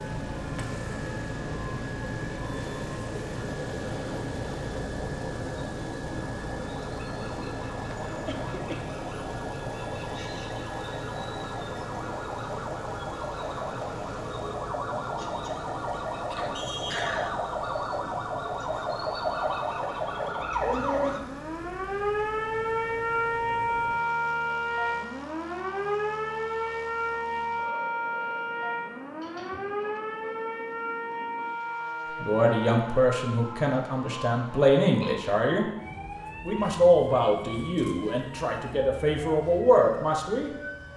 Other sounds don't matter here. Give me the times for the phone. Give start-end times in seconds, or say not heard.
not heard.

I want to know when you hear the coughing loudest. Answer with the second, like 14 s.
17 s.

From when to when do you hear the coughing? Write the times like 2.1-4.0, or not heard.
8.1-8.8, 16.2-17.4, 29.2-29.9.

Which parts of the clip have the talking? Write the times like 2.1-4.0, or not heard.
32.2-35.6, 36.5-40.5.